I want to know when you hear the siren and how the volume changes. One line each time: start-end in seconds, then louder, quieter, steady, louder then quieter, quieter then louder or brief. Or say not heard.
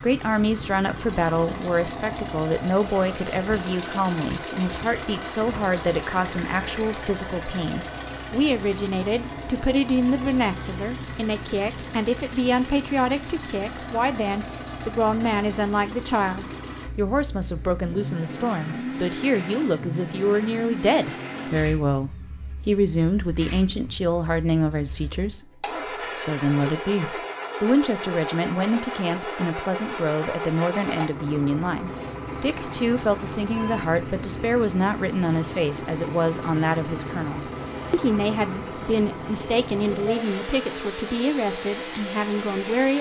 not heard.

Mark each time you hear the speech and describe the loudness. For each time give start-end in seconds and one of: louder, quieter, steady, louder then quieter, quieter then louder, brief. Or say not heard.
0.0-42.9 steady.